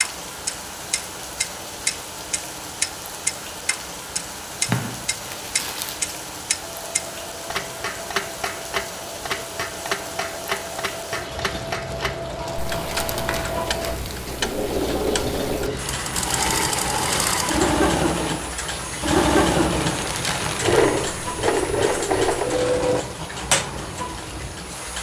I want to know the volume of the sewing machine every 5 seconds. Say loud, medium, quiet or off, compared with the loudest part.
off, quiet, medium, loud, loud.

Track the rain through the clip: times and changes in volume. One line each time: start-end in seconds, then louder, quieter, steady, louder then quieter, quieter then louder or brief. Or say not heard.
0.0-24.9 steady.